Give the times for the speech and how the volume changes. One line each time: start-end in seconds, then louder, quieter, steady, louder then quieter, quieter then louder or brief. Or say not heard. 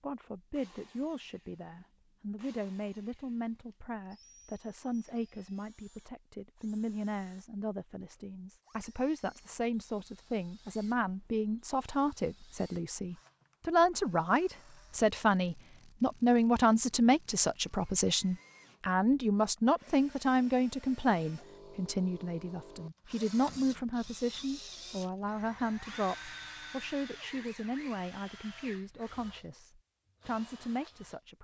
0.0-31.4 louder then quieter.